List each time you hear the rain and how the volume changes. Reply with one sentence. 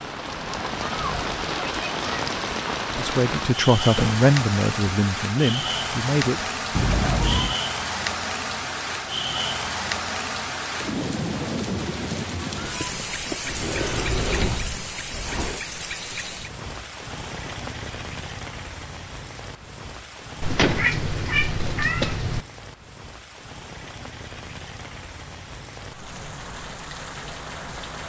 You can hear the rain from 0.0 to 28.0 s, getting quieter.